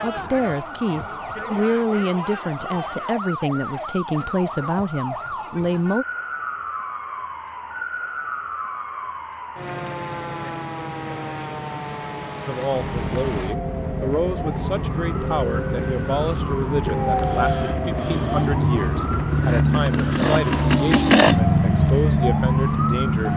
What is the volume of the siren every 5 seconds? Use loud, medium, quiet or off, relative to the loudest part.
medium, medium, medium, loud, loud.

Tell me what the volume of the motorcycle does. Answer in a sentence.
The volume of the motorcycle goes up.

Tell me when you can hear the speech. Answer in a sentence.
The speech can be heard from 0.0 to 6.0 s and from 12.4 to 23.3 s.